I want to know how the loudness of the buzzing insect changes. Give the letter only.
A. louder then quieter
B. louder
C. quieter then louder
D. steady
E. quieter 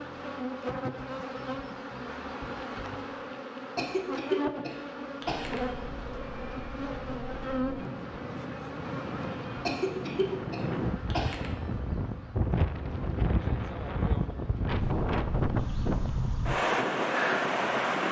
E.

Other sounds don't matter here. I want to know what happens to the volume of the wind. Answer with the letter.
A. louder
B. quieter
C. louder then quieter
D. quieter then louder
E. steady
A.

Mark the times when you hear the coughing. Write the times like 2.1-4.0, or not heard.
3.8-5.6, 9.7-11.4.